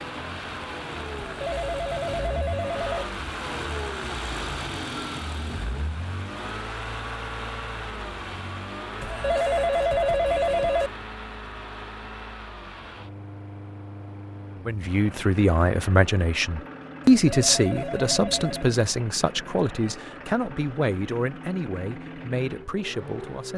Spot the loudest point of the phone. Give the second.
10 s.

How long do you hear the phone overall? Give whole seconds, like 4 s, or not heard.
5 s.